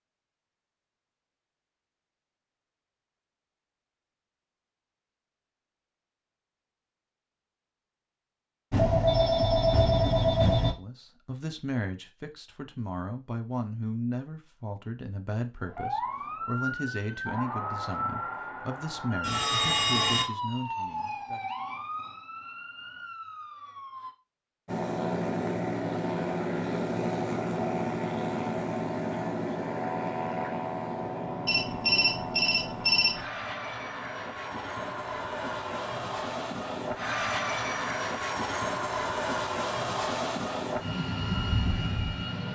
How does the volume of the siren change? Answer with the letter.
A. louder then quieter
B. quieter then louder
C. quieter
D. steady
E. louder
C.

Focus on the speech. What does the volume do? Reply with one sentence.
The loudness of the speech stays about the same.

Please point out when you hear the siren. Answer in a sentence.
The siren can be heard from 15.6 to 24.1 s.